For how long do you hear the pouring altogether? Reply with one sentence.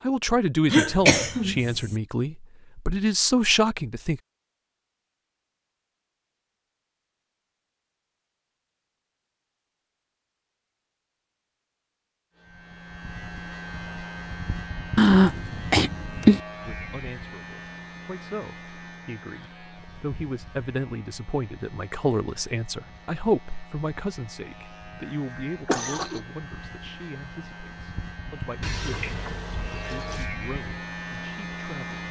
The pouring can be heard for 2 seconds in total.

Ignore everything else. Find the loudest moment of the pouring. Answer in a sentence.
The volume of the pouring peaks at 29 seconds.